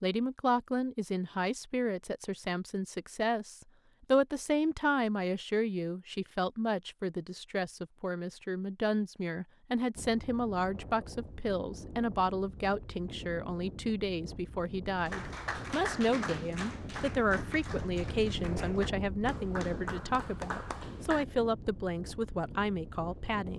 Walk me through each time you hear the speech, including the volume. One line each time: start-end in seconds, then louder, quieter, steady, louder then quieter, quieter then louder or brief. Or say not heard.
0.0-23.5 steady.